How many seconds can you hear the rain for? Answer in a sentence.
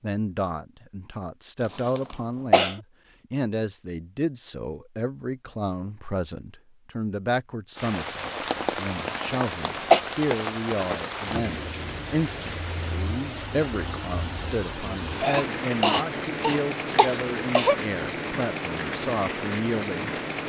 The rain can be heard for 13 seconds in total.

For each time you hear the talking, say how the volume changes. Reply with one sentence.
You can hear the talking from 0.0 to 20.1 s, at a steady volume.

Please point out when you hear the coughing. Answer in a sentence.
You can hear the coughing from 1.6 to 2.8 s, from 8.9 to 10.0 s and from 15.2 to 17.8 s.